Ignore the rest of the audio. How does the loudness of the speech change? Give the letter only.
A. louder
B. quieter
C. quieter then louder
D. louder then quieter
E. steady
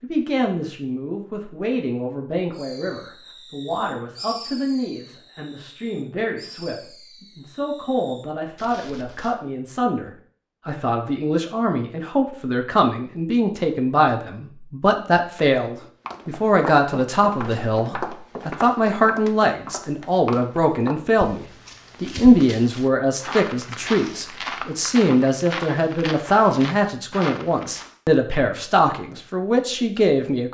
A.